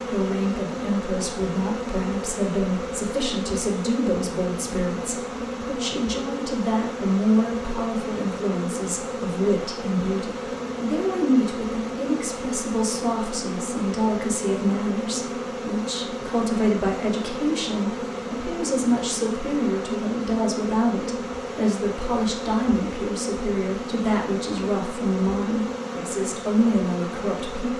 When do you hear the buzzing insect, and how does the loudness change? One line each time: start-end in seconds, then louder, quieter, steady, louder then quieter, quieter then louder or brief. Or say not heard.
0.0-27.7 steady.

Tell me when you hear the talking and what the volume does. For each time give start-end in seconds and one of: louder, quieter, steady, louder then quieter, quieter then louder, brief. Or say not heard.
0.1-27.7 steady.